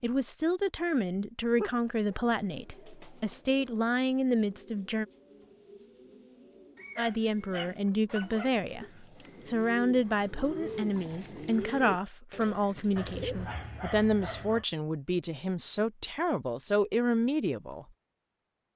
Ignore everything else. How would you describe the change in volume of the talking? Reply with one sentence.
The volume of the talking stays about the same.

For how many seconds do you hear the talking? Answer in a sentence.
You can hear the talking for 16 seconds altogether.